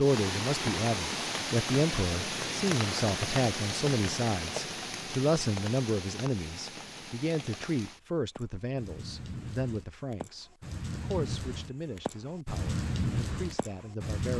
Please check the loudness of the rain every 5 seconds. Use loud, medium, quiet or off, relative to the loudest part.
loud, medium, loud.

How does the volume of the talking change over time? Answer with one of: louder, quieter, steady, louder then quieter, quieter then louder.
quieter.